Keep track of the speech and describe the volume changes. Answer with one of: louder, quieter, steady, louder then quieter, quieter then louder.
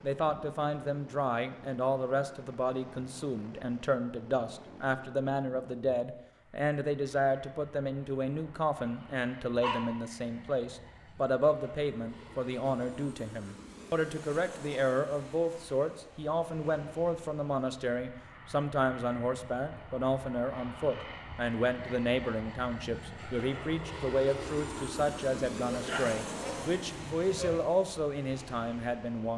steady.